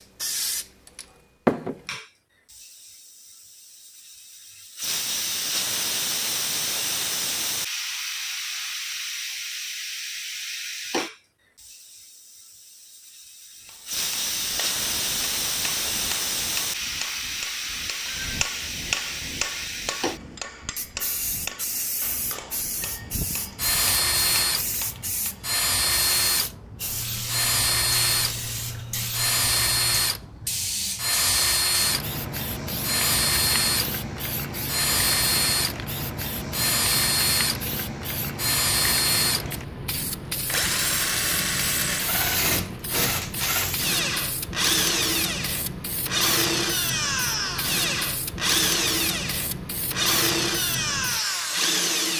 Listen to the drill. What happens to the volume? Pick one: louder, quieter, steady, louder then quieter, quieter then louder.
steady.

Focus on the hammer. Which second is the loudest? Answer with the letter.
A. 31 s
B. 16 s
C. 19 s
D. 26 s
C.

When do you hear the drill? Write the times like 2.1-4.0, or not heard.
22.8-52.1.